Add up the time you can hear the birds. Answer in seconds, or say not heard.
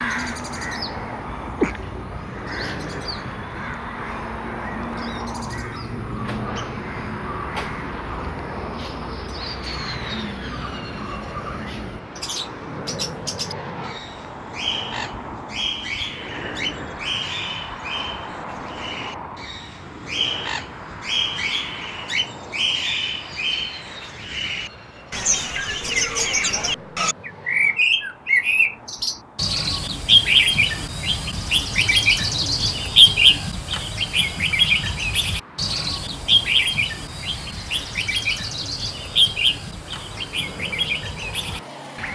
42 s.